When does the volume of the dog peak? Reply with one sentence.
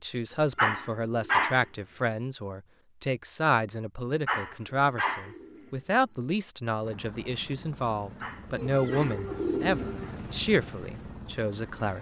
The volume of the dog peaks at 1 second.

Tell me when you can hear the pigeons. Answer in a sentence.
You can hear the pigeons from 0.3 to 2.1 s, from 4.4 to 6.3 s and from 8.6 to 10.2 s.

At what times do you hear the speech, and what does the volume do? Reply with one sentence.
The speech can be heard from 0.0 to 11.9 s, at a steady volume.